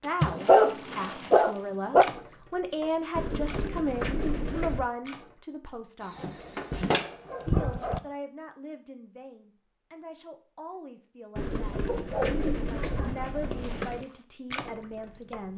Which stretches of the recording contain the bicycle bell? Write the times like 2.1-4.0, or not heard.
not heard.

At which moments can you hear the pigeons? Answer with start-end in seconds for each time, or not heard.
3.1-4.8, 11.3-14.1.